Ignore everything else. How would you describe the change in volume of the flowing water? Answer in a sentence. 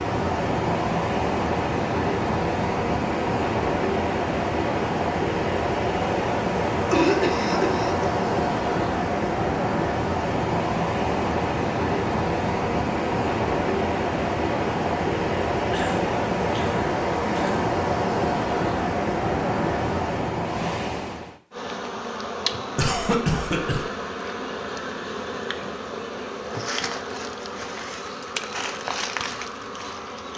The volume of the flowing water stays about the same.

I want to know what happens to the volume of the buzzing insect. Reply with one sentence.
The loudness of the buzzing insect stays about the same.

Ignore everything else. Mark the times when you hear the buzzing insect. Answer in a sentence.
The buzzing insect can be heard from 21.5 to 30.3 s.